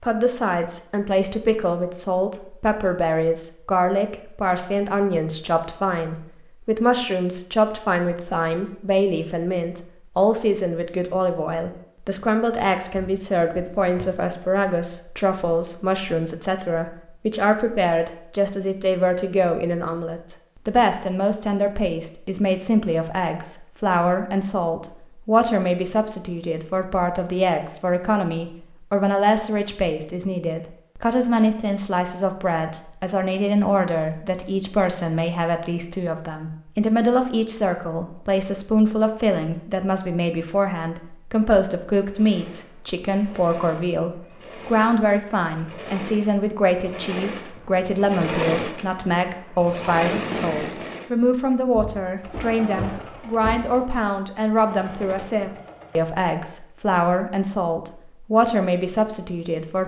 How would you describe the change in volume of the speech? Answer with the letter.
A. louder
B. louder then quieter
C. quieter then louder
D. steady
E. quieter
D.